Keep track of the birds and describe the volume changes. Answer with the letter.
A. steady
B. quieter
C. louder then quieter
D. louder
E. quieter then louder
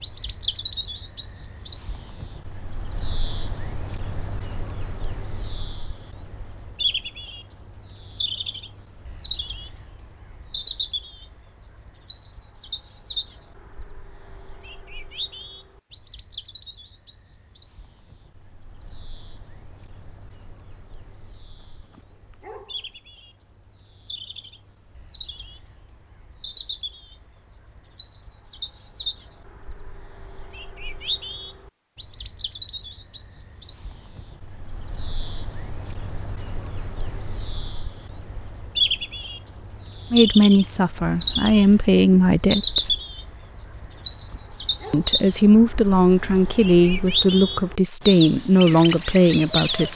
E.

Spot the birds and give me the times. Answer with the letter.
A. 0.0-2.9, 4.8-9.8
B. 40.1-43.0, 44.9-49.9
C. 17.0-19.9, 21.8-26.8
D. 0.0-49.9
D.